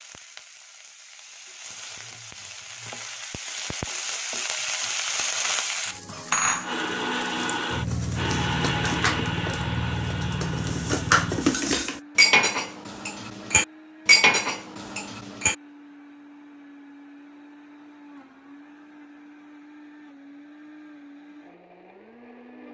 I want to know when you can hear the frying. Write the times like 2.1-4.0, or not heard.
0.0-11.9.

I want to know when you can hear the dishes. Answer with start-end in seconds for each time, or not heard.
7.9-15.6.